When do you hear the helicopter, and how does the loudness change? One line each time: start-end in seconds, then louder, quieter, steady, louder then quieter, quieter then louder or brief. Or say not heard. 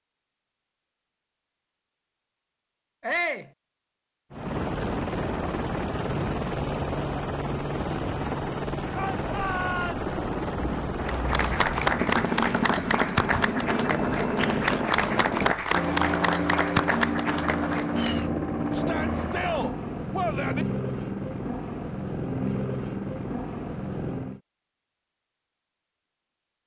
4.3-24.4 steady.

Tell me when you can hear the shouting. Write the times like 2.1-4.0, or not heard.
3.0-3.5, 8.9-10.1, 18.7-20.6.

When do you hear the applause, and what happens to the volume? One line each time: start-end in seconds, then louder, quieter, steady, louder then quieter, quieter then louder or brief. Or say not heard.
11.0-18.3 steady.